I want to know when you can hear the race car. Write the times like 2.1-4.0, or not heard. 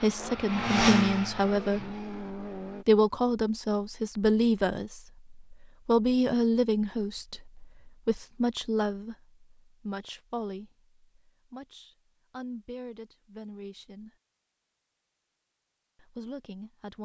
0.0-2.9.